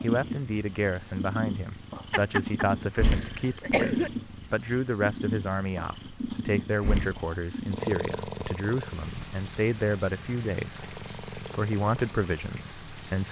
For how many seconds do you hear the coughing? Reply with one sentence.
You can hear the coughing for 2 seconds altogether.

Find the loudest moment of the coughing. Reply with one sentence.
The volume of the coughing peaks at 4 seconds.